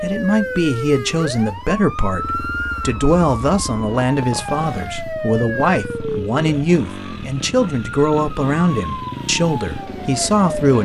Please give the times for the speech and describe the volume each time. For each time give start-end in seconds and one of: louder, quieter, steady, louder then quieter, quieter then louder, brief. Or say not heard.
0.0-10.8 steady.